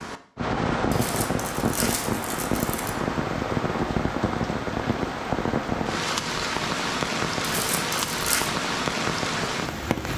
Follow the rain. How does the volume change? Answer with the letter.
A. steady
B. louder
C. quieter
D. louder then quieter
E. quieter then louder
A.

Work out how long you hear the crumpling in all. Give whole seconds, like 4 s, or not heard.
3 s.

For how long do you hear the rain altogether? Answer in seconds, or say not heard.
10 s.